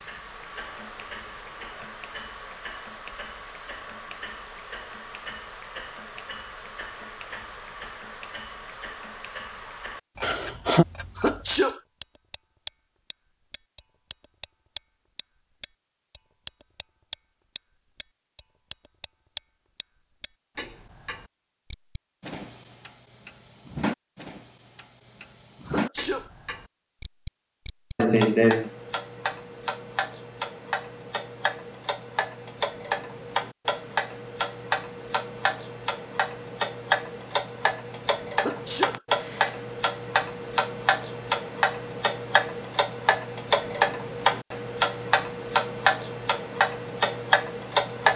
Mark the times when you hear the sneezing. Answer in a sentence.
The sneezing can be heard from 11.2 to 11.8 s, from 25.6 to 26.2 s and from 38.4 to 39.0 s.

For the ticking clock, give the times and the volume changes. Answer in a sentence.
You can hear the ticking clock from 0.0 to 48.1 s, getting louder.